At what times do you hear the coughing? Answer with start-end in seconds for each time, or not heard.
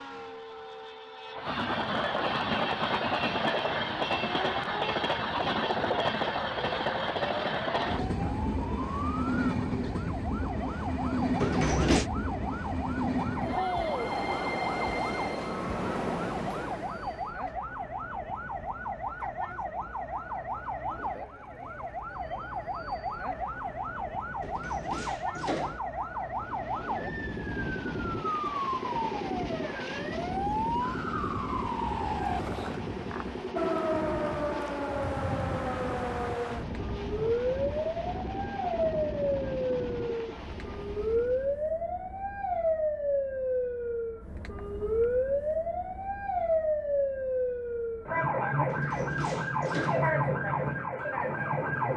not heard.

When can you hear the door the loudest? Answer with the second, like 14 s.
12 s.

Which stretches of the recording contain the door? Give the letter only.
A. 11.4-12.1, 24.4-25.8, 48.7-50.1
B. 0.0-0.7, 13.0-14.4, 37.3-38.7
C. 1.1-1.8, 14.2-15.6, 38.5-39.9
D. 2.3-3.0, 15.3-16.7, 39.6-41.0
A.